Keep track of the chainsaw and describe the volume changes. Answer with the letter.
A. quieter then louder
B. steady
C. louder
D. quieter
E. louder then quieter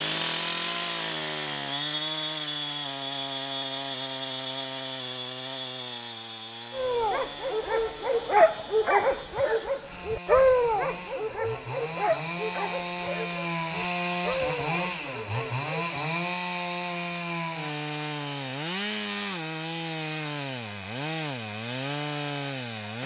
A.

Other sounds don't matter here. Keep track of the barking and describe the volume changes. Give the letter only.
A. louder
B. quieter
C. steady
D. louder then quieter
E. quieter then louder
B.